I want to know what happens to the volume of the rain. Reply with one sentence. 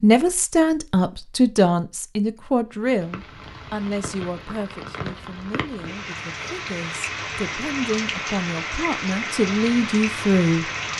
The loudness of the rain goes up.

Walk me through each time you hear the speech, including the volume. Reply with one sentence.
You can hear the speech from 0.0 to 10.7 s, getting quieter then louder.